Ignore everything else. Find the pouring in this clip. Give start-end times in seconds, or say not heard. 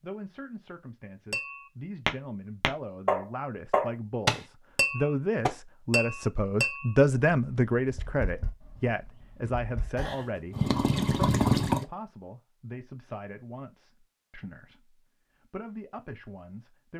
9.9-11.8.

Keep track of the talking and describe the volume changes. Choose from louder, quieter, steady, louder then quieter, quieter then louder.
louder then quieter.